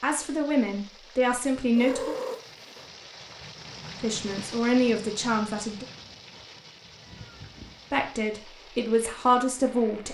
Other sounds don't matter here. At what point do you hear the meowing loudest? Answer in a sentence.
The volume of the meowing peaks at 2 seconds.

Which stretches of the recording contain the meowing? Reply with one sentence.
You can hear the meowing from 1.8 to 2.9 s and from 7.0 to 7.8 s.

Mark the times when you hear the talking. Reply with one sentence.
The talking can be heard from 0.0 to 2.1 s, from 4.0 to 5.8 s and from 7.9 to 10.0 s.